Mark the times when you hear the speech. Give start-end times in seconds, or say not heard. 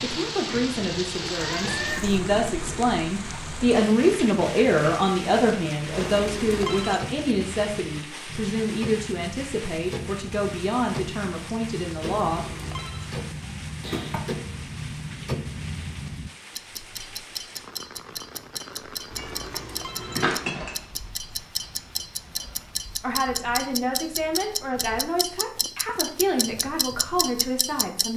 0.0-12.4, 23.0-28.1.